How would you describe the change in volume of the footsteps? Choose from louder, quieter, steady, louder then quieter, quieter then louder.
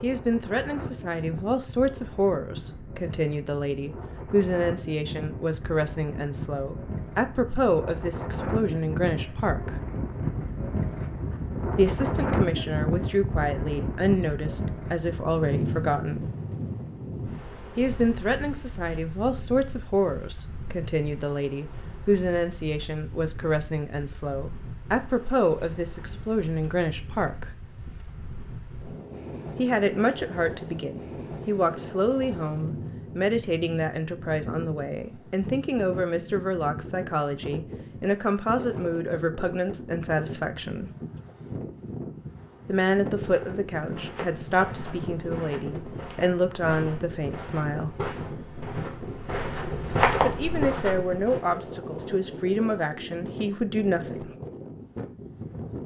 louder.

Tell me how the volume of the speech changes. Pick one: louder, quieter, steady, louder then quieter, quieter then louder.
steady.